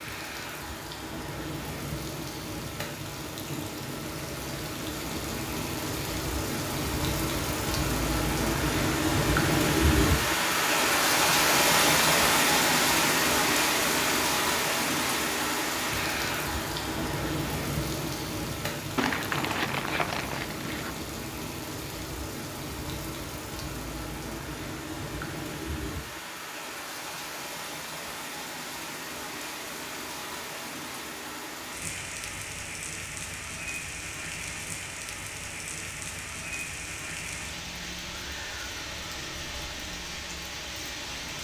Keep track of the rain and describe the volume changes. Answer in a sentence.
The volume of the rain goes up, then down.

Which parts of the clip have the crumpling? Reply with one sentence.
You can hear the crumpling from 18.9 to 20.9 s.